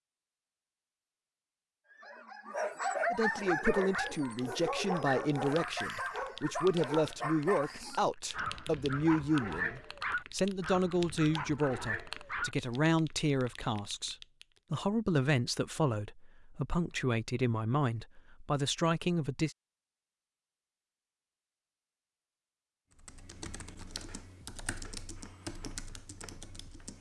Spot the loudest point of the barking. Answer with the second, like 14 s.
3 s.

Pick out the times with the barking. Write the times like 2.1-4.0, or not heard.
1.9-12.6.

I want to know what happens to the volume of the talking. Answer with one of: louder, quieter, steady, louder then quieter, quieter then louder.
steady.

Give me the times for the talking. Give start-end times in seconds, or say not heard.
3.1-19.6.